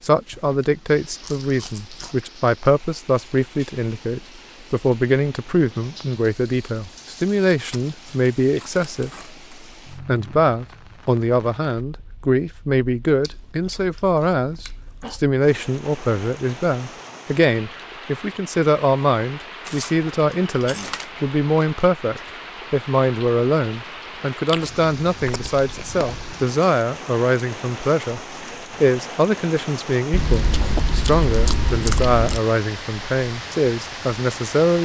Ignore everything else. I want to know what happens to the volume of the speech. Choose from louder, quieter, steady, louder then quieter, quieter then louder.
steady.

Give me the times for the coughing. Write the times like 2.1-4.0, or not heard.
14.5-15.2.